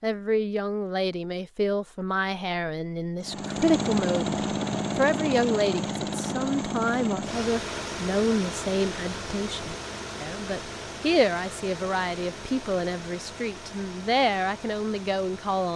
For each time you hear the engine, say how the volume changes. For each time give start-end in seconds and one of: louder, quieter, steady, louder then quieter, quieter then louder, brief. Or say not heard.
3.2-15.7 quieter.